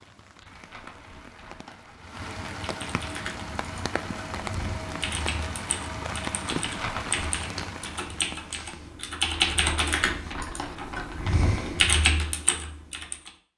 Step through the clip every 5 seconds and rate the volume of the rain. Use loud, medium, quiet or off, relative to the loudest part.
loud, loud, off.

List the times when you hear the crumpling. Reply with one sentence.
You can hear the crumpling from 0.4 to 2.1 s, from 6.6 to 7.4 s and from 9.3 to 11.8 s.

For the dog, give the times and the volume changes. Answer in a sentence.
You can't hear the dog here.